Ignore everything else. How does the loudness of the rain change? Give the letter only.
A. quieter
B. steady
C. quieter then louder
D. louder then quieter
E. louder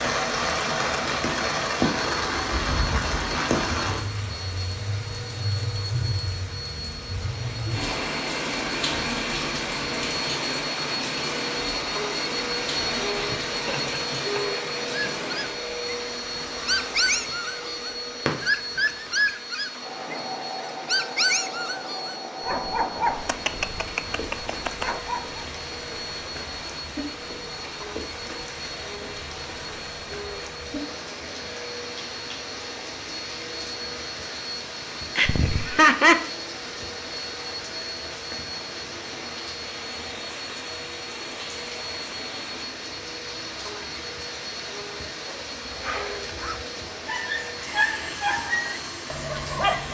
A.